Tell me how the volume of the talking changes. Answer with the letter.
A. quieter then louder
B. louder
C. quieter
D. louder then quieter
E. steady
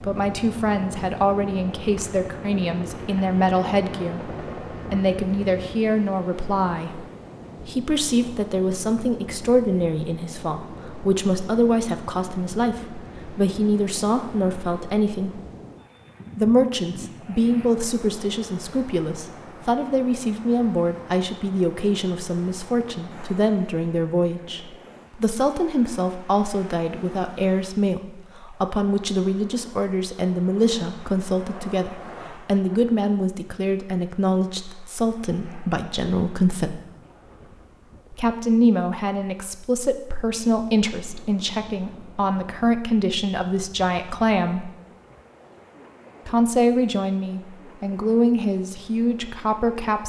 E.